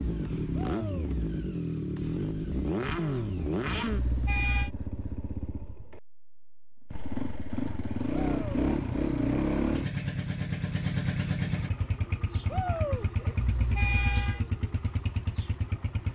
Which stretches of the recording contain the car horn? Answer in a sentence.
You can hear the car horn from 3.9 to 4.7 s and from 13.3 to 14.4 s.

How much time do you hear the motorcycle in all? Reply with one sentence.
The motorcycle can be heard for 16 seconds in total.